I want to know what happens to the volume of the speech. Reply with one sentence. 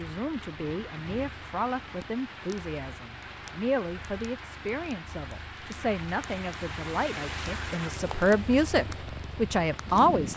The loudness of the speech goes up.